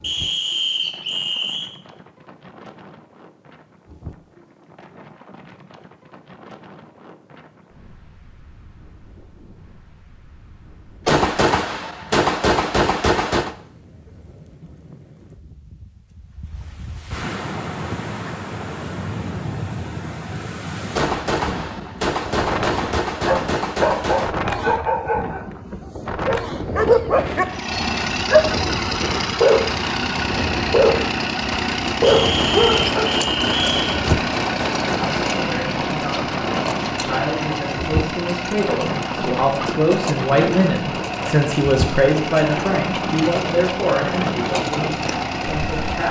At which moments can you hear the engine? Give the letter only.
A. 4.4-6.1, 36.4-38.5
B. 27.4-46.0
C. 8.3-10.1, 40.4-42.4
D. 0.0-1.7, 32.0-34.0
B.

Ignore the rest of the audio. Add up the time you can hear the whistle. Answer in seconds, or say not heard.
4 s.